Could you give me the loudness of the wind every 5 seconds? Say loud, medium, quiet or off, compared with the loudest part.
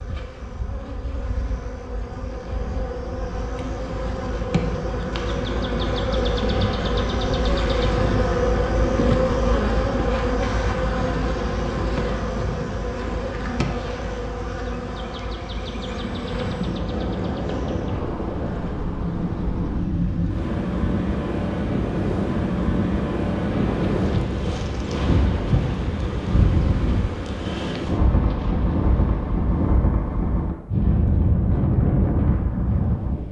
off, off, off, medium, loud, loud, loud.